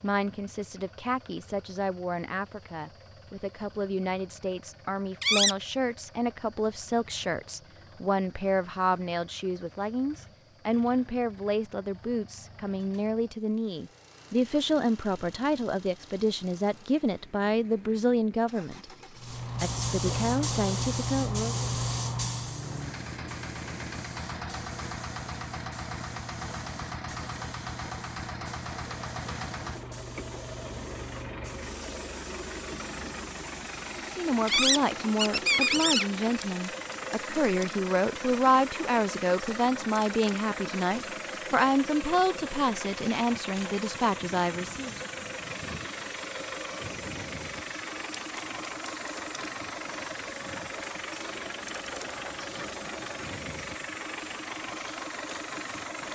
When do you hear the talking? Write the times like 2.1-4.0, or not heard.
0.0-18.9, 19.6-21.6, 34.0-45.0.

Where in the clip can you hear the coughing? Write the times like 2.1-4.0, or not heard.
not heard.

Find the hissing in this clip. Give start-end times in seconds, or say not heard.
19.1-56.1.